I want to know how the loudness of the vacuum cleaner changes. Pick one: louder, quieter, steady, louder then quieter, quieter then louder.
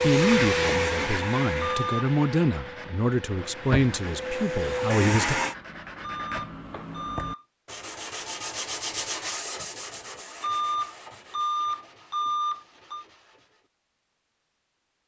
quieter then louder.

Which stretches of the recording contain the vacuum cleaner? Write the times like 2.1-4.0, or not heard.
0.0-5.5.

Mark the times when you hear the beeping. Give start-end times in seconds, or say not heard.
1.6-2.1, 6.0-7.5, 10.4-13.1.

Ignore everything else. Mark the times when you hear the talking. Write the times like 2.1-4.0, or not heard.
0.0-5.4.